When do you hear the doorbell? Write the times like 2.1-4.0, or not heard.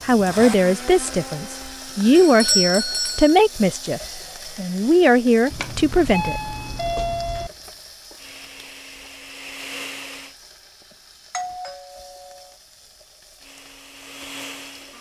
2.1-3.4, 5.5-7.5, 11.3-12.6.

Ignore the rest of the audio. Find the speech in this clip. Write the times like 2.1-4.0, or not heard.
0.0-6.5.